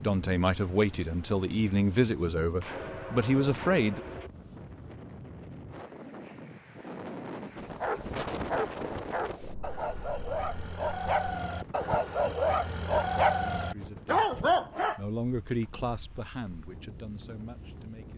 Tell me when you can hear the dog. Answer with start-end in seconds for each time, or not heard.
7.8-15.0.